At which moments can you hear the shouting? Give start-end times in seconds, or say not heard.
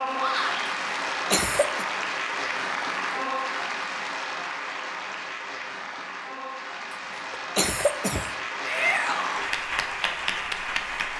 0.1-0.7, 8.7-9.5.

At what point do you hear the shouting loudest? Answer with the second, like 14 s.
9 s.